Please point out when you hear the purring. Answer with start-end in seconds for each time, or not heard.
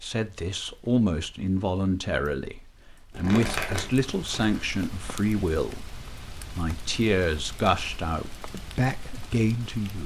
not heard.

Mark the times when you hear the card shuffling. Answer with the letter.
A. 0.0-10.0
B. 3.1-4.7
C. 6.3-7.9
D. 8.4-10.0
B.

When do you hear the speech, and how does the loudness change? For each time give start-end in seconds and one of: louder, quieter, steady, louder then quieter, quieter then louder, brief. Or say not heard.
0.0-10.0 steady.